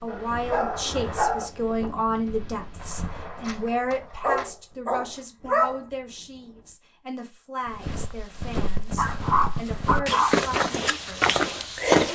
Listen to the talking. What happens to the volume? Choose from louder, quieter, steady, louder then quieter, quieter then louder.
quieter.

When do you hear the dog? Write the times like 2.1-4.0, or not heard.
0.1-1.5, 4.2-5.8, 8.9-10.4.